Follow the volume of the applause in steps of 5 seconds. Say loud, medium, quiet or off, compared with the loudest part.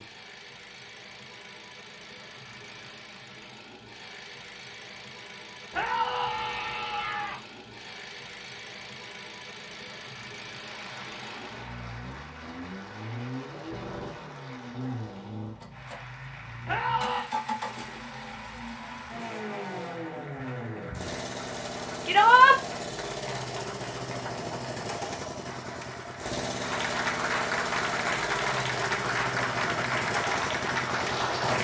off, off, quiet, quiet, quiet, loud, loud.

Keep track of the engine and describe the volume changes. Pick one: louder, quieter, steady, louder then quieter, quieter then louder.
louder.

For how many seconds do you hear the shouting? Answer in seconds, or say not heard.
3 s.